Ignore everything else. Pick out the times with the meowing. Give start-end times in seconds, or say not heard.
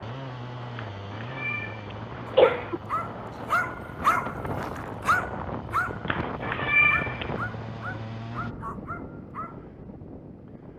0.8-1.7, 2.3-2.8, 6.0-7.3.